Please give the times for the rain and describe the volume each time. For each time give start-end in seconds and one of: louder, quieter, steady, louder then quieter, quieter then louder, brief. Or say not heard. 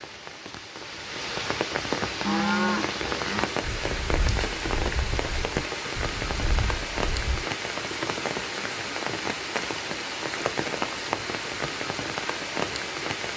0.0-13.3 steady.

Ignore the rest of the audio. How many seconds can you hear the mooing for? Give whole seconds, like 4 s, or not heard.
5 s.